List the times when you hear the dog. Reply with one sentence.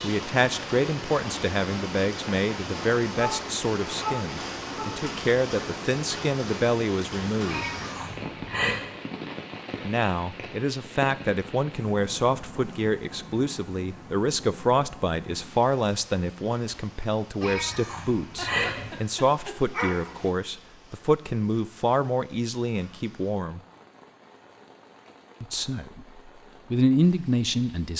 You can hear the dog from 3.1 to 4.9 s and from 18.4 to 20.3 s.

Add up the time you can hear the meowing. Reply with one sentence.
You can hear the meowing for 3 seconds altogether.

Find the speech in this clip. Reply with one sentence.
The speech can be heard from 0.0 to 7.7 s, from 9.8 to 23.6 s and from 25.4 to 27.9 s.